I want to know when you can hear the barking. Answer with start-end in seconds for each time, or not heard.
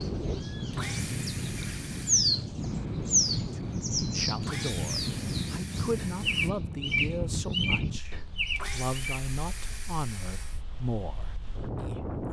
not heard.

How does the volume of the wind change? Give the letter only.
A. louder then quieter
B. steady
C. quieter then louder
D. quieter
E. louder
D.